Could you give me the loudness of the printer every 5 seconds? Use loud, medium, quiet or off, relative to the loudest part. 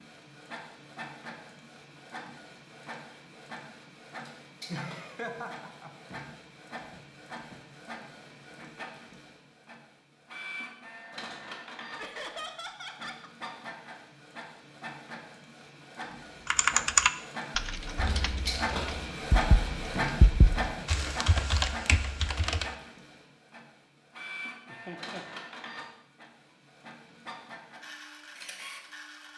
medium, medium, medium, loud, loud, medium.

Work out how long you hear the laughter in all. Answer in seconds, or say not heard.
3 s.